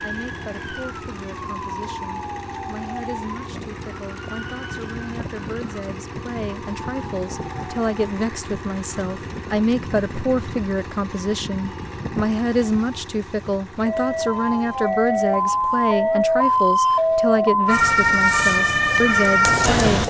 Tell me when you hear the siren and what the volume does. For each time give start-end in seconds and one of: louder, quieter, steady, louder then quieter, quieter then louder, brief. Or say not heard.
0.0-20.0 louder.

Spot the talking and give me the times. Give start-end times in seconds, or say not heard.
0.0-20.0.